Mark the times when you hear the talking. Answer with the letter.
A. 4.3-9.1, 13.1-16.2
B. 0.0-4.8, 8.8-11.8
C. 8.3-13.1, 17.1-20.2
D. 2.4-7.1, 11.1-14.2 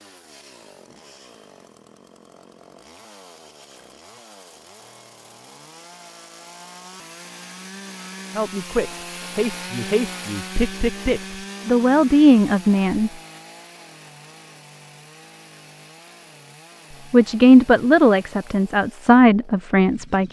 C.